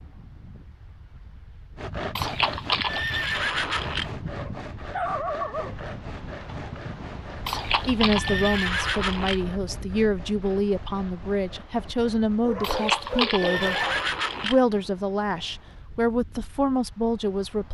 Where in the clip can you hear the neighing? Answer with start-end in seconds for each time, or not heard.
2.1-4.2, 7.5-9.4, 12.6-14.6.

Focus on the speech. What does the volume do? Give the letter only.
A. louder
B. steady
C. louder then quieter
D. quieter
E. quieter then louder
B.